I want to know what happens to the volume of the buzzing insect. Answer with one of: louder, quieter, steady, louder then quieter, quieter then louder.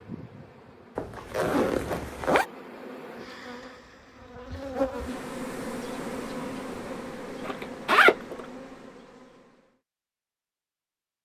louder then quieter.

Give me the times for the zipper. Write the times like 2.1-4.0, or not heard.
0.9-2.5, 7.5-8.3.